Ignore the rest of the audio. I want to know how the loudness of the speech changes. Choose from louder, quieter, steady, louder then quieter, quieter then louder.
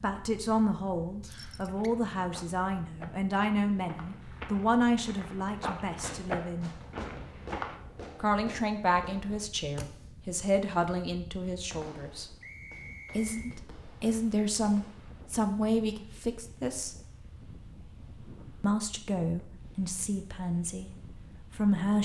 steady.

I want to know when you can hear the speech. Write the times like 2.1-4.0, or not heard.
0.0-6.7, 8.2-12.2, 13.2-16.9, 18.6-21.9.